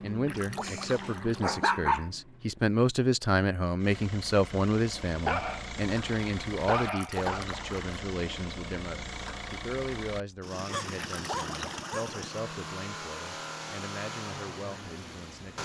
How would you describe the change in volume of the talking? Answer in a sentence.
The loudness of the talking goes down.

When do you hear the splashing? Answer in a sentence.
You can hear the splashing from 0.2 to 1.4 s, from 6.8 to 8.1 s and from 10.9 to 12.1 s.